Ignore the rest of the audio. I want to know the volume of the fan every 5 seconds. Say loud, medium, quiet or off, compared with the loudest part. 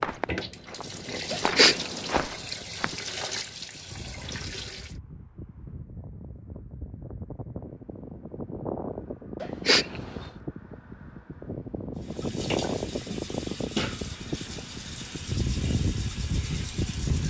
quiet, medium, loud, loud.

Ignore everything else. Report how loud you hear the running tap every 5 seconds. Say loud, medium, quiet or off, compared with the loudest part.
loud, off, loud, loud.